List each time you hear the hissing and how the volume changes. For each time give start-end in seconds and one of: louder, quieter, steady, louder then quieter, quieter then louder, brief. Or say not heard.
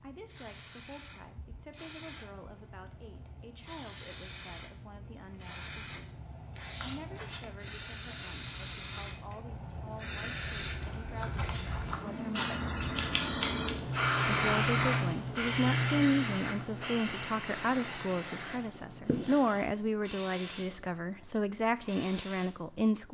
0.0-23.0 louder then quieter.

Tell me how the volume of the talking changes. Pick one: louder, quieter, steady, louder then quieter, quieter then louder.
louder.